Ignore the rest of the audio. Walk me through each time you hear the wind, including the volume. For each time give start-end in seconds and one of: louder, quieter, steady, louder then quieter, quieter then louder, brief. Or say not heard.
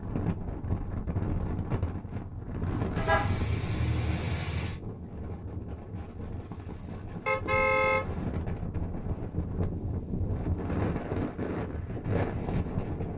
0.0-13.1 quieter then louder.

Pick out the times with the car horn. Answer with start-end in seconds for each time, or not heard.
3.0-4.8, 7.2-8.1.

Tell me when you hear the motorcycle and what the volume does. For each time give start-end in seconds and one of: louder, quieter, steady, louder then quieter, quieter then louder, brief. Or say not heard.
not heard.